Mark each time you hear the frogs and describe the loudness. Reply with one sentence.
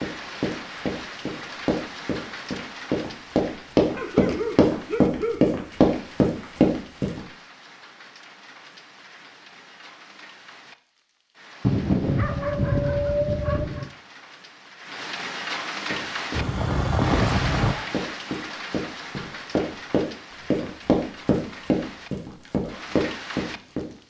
The frogs can't be heard in this clip.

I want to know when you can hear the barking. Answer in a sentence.
You can hear the barking from 4.0 to 5.8 s, from 11.6 to 13.9 s and from 16.3 to 18.1 s.